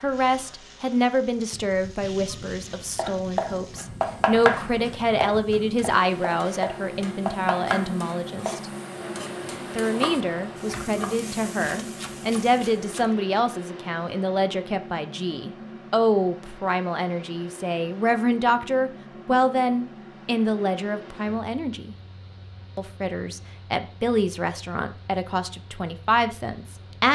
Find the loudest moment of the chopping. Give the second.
4 s.